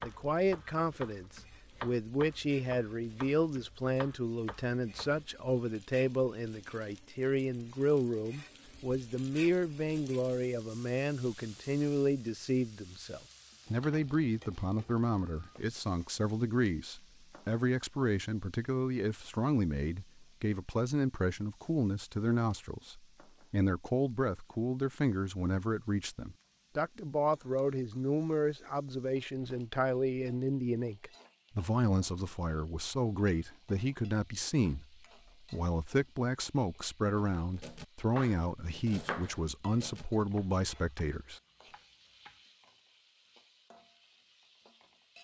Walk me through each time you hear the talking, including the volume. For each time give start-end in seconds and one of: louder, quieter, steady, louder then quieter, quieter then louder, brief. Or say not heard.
0.0-41.4 steady.